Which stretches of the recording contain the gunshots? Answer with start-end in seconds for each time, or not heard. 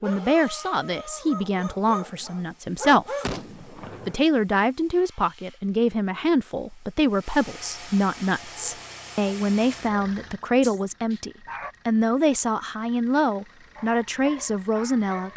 3.2-4.2.